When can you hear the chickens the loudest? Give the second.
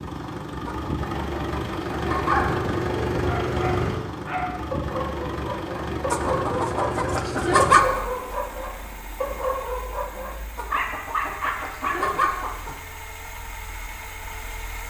8 s.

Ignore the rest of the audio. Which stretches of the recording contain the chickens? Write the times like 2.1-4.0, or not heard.
0.7-2.6, 6.1-8.0, 10.6-12.8.